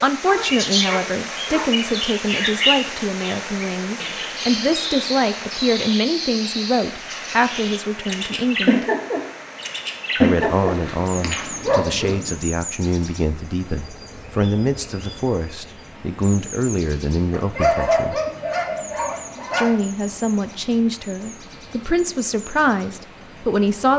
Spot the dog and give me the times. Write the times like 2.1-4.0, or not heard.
0.2-1.7, 10.4-12.3, 17.3-19.7.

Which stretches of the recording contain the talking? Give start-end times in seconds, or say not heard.
0.0-8.8, 10.2-18.2, 19.6-23.9.